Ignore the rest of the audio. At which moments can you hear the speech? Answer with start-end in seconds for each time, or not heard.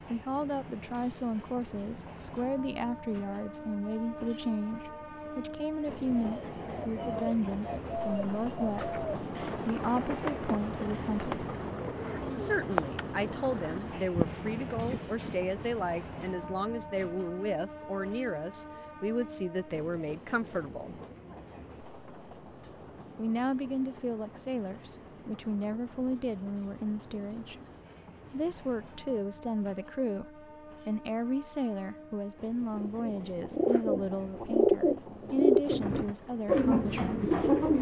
0.1-11.6, 12.3-20.9, 23.1-27.6, 28.3-37.4.